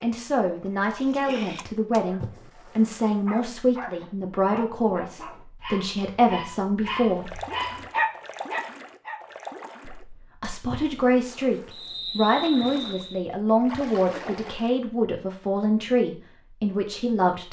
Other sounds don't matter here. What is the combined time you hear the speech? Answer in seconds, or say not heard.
15 s.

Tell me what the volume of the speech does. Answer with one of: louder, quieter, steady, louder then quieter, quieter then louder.
steady.